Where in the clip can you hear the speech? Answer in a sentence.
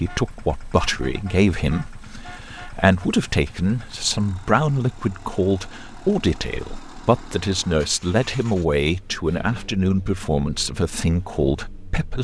The speech can be heard from 0.0 to 12.1 s.